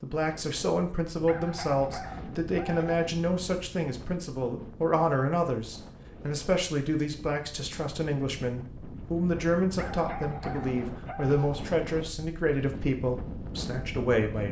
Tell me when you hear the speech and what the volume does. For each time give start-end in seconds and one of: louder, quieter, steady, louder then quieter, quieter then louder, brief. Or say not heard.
0.0-14.4 steady.